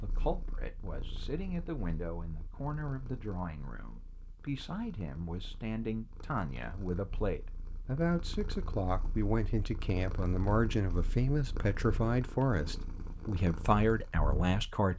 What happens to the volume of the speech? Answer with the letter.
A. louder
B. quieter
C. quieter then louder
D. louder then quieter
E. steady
A.